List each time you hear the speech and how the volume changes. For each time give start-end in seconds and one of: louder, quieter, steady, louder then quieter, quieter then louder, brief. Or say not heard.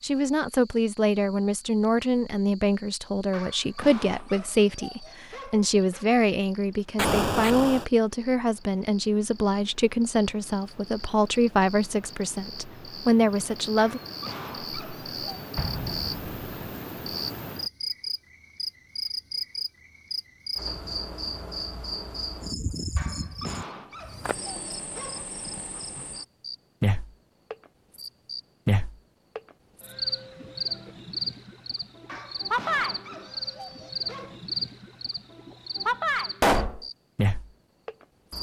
0.0-14.0 steady.